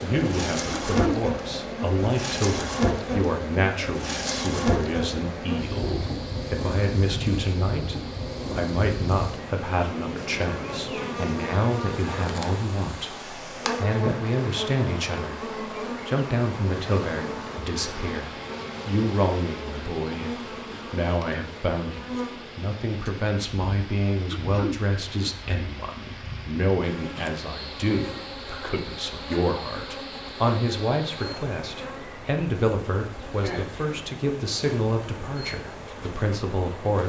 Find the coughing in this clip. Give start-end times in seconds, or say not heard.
0.7-1.2, 24.3-24.8.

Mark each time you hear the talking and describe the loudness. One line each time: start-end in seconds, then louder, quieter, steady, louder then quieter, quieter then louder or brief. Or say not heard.
0.0-37.0 steady.